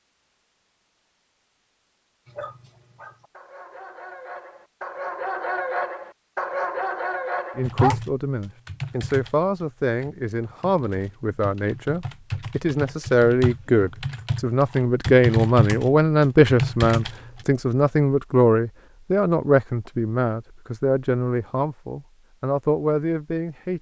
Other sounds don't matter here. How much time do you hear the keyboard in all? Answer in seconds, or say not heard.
10 s.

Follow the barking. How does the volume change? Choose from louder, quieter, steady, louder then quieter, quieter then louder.
louder.